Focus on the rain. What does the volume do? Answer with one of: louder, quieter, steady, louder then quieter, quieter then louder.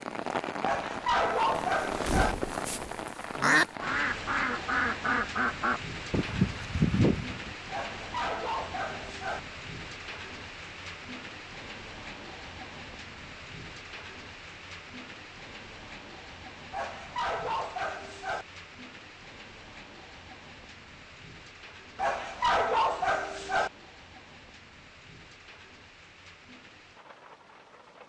quieter.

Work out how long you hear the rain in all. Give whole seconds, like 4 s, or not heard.
28 s.